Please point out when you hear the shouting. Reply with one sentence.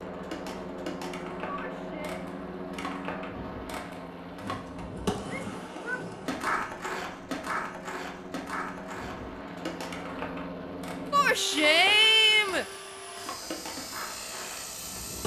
The shouting can be heard from 1.4 to 2.2 s, from 5.2 to 6.0 s and from 11.1 to 12.7 s.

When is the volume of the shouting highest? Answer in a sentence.
The volume of the shouting peaks at 12 seconds.